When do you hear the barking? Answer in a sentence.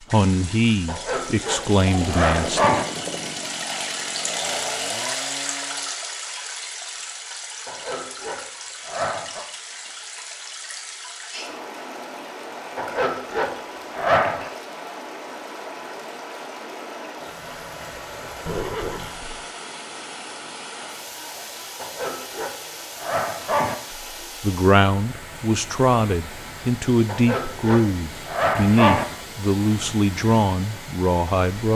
You can hear the barking from 0.8 to 2.9 s, from 7.7 to 9.4 s, from 12.8 to 14.5 s, from 21.8 to 23.8 s and from 27.1 to 29.1 s.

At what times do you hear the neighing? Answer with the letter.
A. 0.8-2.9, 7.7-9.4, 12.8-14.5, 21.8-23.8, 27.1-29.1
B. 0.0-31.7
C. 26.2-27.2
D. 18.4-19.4
D.